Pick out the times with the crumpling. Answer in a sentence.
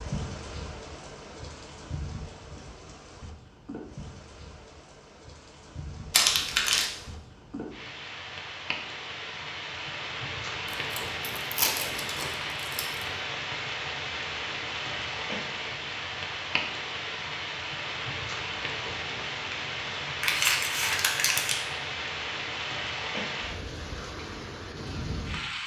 You can hear the crumpling from 6.1 to 6.8 s, from 10.9 to 13.1 s and from 20.2 to 21.6 s.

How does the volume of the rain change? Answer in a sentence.
The volume of the rain goes up.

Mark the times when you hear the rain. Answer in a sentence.
The rain can be heard from 0.0 to 25.6 s.